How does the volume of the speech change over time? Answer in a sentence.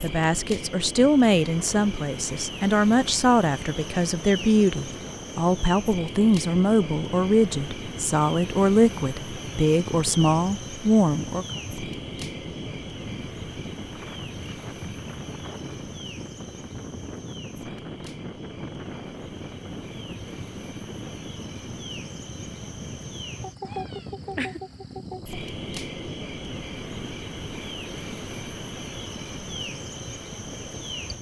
The volume of the speech stays about the same.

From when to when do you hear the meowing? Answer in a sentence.
You can hear the meowing from 23.6 to 24.6 s.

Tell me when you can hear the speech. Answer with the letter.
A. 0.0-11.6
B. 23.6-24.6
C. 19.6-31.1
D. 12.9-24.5
A.